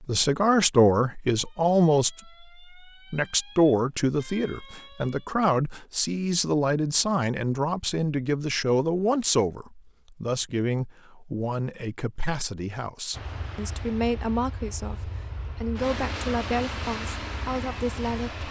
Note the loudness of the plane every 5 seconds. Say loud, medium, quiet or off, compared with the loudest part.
off, off, medium, loud.